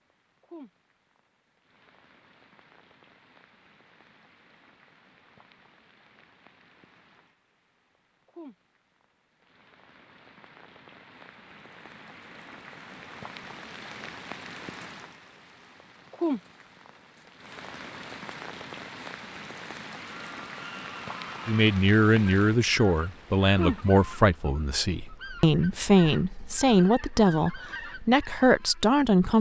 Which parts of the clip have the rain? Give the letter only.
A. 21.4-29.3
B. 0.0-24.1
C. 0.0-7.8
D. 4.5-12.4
B.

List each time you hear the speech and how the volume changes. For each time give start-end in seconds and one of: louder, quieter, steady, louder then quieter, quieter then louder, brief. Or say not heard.
21.4-29.3 steady.